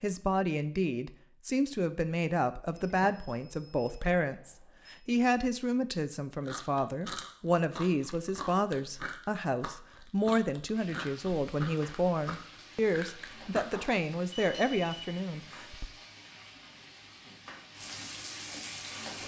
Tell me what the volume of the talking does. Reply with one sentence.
The loudness of the talking stays about the same.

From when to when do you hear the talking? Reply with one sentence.
You can hear the talking from 0.0 to 15.8 s.